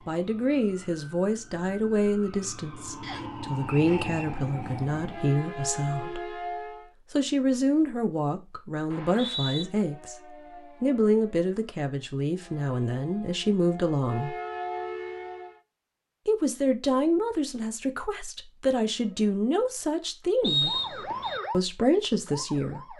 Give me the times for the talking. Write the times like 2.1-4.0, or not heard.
0.1-6.4, 7.1-14.3, 16.2-20.8, 21.5-22.9.